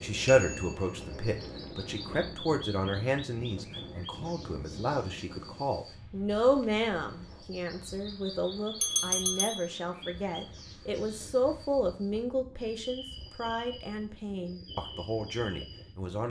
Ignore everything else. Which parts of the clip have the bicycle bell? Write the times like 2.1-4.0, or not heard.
0.2-1.5, 8.8-9.7.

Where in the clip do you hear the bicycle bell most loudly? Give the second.
9 s.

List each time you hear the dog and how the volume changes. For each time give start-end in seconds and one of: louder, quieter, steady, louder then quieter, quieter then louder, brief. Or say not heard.
not heard.